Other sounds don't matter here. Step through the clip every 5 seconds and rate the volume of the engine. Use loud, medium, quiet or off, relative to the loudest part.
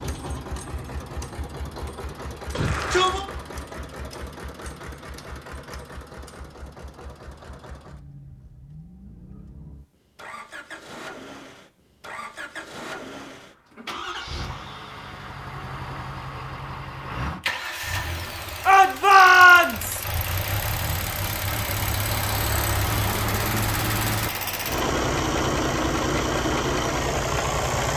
quiet, quiet, quiet, medium, loud, loud.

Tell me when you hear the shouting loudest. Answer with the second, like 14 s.
19 s.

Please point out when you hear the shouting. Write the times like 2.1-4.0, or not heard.
2.5-3.2, 18.6-20.0.